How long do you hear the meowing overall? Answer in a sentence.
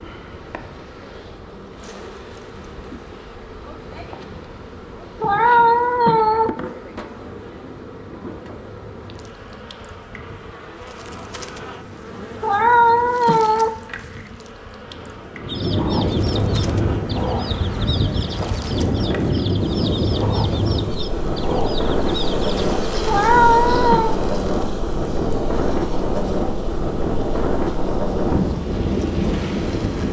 You can hear the meowing for 4 seconds altogether.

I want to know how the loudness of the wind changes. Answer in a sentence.
The volume of the wind goes up.